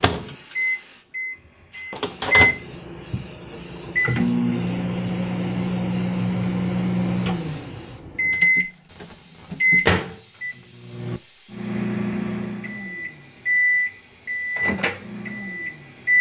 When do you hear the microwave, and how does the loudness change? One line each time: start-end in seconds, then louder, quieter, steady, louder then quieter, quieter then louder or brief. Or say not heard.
0.0-16.1 steady.